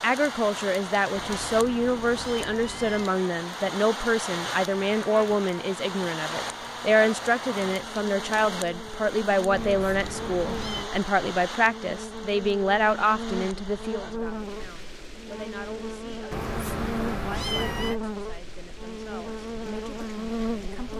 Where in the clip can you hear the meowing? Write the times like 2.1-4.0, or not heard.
1.1-3.1, 9.5-10.9, 16.3-17.9.